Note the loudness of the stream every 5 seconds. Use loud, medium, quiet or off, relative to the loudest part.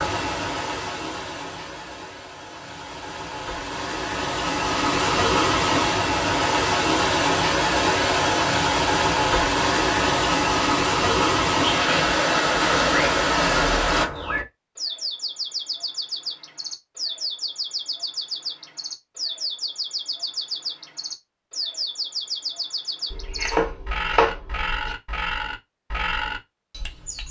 medium, loud, loud, off, off, off.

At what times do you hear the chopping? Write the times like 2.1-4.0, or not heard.
23.1-24.9.